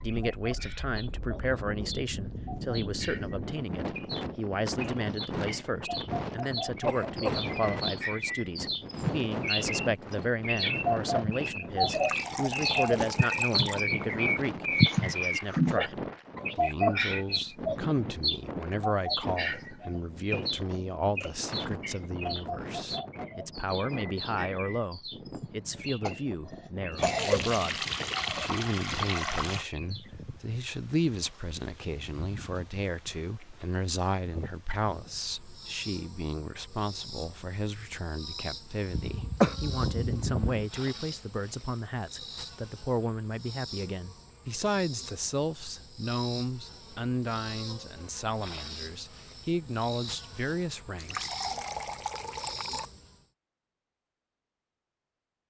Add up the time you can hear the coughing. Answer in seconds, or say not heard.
4 s.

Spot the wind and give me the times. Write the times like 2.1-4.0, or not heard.
0.0-35.3.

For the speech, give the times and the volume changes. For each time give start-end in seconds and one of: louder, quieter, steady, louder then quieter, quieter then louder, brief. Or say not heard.
0.0-51.3 steady.